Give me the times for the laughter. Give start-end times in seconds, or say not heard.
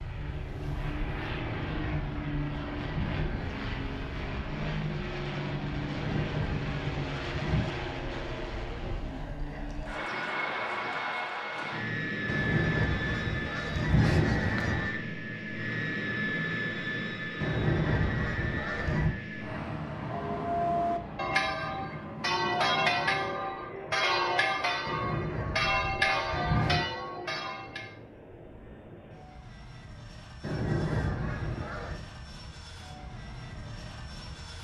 not heard.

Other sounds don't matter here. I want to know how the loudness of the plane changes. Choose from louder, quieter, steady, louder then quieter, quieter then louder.
quieter.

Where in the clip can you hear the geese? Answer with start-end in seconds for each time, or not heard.
1.4-3.9, 5.8-7.7, 12.2-14.9, 17.4-19.1, 24.9-26.9, 30.4-32.0.